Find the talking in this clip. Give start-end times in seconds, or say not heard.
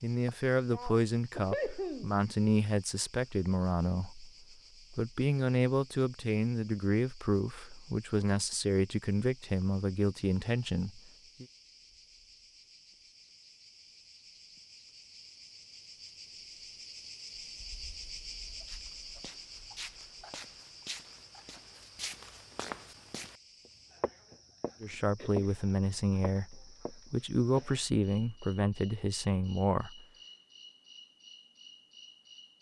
0.0-11.4, 24.8-30.1.